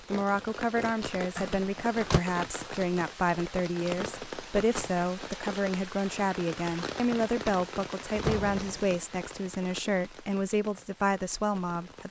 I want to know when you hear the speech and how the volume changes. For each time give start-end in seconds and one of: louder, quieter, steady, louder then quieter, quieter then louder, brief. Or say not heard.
0.1-12.0 steady.